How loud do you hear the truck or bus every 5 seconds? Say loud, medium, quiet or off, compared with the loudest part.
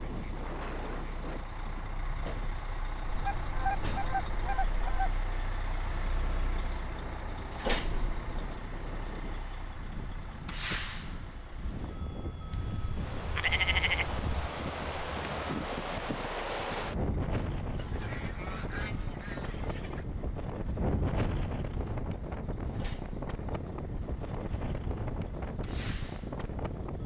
loud, loud, loud, medium, quiet, medium.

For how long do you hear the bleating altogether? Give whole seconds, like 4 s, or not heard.
2 s.